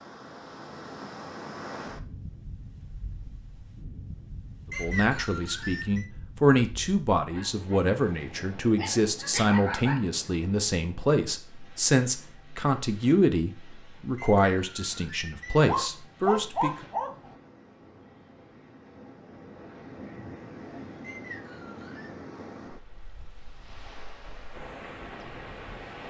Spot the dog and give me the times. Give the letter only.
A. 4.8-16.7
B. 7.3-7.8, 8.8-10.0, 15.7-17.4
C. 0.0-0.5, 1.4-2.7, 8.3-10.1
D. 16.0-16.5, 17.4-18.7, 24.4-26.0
B.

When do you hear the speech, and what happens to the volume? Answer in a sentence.
The speech can be heard from 4.8 to 16.7 s, at a steady volume.